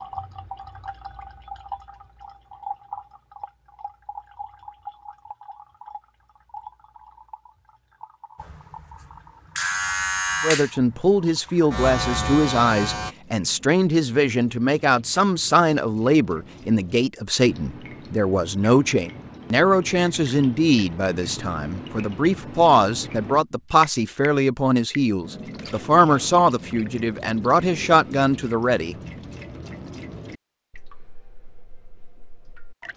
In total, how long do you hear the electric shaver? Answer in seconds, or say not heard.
5 s.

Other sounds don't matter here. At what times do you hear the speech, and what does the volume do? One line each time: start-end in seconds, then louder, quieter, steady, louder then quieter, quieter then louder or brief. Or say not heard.
10.4-28.9 steady.